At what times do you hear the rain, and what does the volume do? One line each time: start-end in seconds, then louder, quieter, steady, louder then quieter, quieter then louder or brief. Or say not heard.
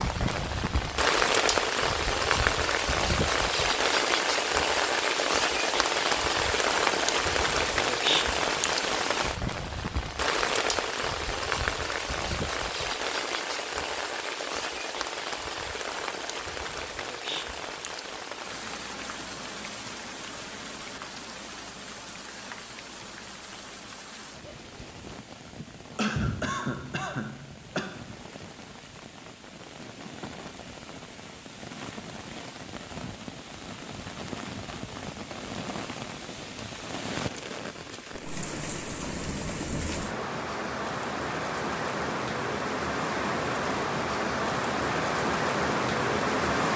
0.0-46.7 quieter then louder.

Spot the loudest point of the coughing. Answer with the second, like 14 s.
26 s.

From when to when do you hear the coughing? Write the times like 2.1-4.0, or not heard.
25.9-27.9.